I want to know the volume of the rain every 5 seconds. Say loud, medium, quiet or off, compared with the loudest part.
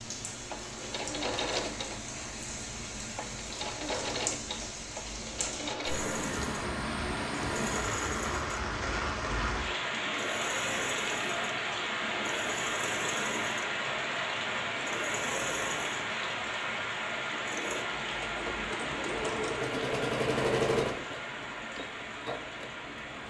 medium, loud, loud, loud, medium.